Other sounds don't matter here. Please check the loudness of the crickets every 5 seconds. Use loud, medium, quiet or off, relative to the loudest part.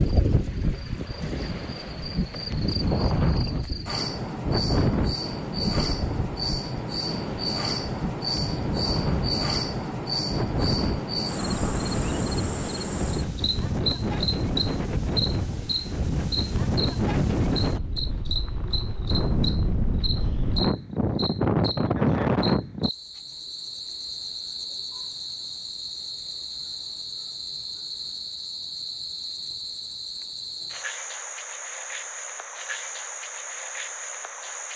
medium, loud, loud, loud, medium, medium, medium.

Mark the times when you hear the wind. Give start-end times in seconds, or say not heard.
0.0-22.9.